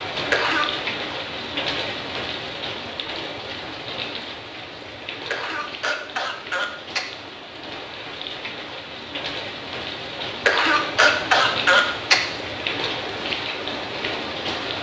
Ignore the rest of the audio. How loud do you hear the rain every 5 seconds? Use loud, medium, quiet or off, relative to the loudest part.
loud, medium, loud.